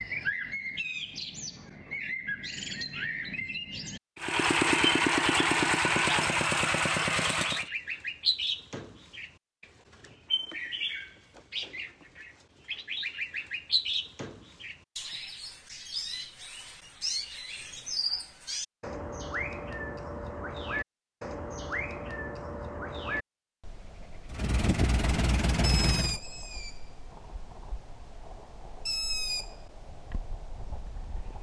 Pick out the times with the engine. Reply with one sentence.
You can hear the engine from 4.2 to 7.7 s and from 24.2 to 26.2 s.